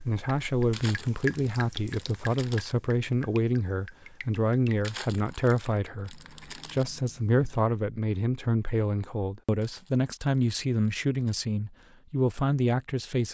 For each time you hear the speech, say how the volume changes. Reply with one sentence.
The speech can be heard from 0.1 to 13.2 s, at a steady volume.